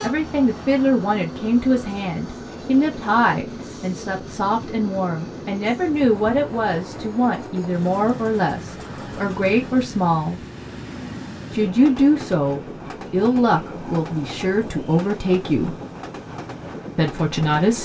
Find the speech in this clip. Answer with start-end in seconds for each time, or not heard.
0.0-10.4, 11.5-15.8, 16.9-17.8.